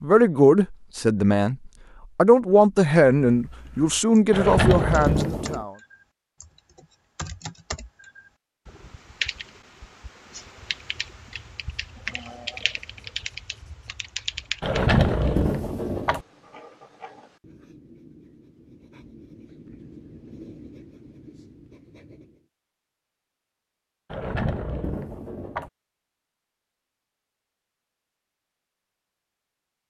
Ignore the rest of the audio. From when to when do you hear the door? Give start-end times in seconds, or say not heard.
4.3-5.7, 14.6-16.2, 24.1-25.7.